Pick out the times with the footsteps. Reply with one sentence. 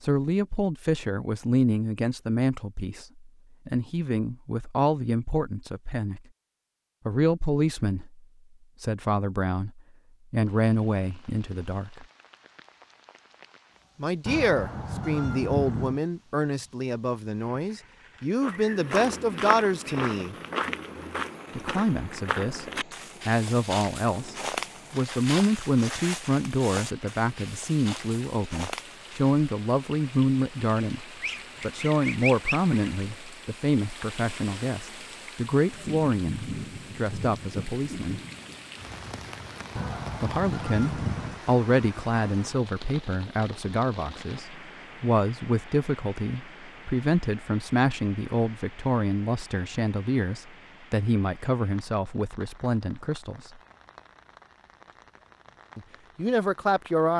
You can hear the footsteps from 18.4 to 29.4 s.